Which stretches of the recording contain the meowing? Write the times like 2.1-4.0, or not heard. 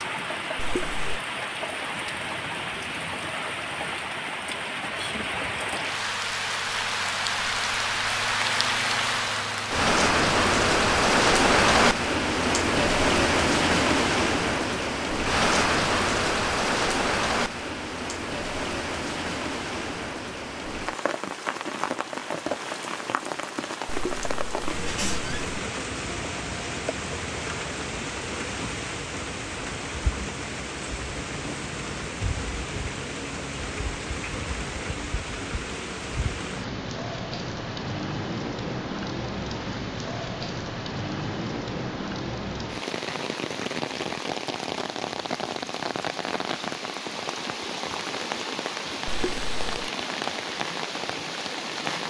0.6-1.2, 23.9-25.4, 49.0-49.9.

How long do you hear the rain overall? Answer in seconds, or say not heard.
52 s.